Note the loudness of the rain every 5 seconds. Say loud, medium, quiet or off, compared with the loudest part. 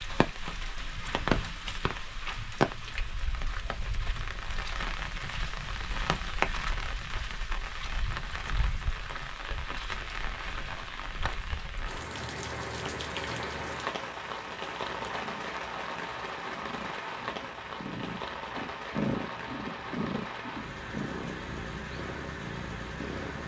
loud, loud, loud, loud, medium.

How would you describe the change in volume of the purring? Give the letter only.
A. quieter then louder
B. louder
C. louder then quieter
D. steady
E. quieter
C.